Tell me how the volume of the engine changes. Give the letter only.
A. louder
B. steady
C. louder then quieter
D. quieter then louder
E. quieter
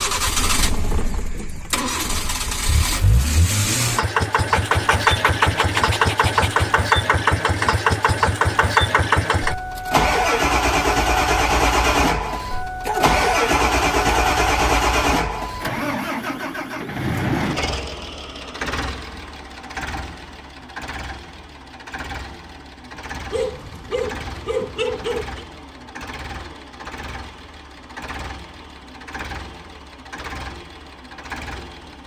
E.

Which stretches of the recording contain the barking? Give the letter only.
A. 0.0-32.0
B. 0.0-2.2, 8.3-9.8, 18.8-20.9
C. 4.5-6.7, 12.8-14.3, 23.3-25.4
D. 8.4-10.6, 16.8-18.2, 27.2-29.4
C.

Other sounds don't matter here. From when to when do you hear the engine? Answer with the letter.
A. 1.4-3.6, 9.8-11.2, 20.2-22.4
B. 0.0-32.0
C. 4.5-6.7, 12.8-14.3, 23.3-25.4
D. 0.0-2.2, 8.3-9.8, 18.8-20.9
B.